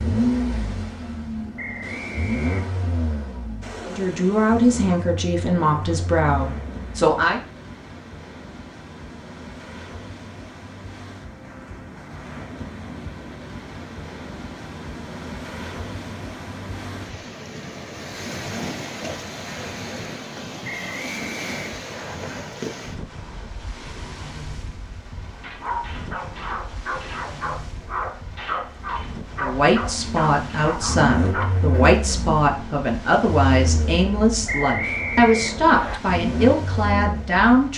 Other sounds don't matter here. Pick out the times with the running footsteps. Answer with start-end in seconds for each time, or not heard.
not heard.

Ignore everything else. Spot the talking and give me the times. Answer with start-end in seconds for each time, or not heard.
3.9-7.4, 29.4-37.7.